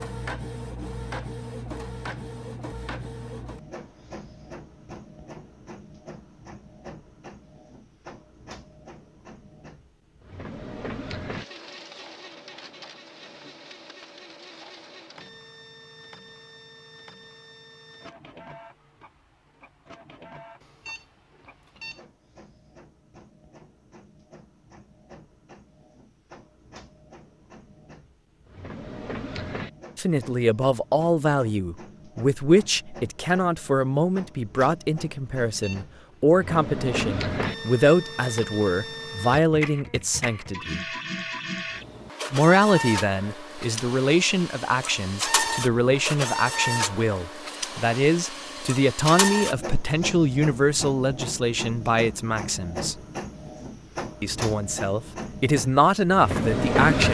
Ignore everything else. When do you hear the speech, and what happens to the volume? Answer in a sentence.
The speech can be heard from 29.9 to 40.8 s, at a steady volume; from 42.3 to 53.0 s, at a steady volume; and briefly from 54.2 to 57.0 s.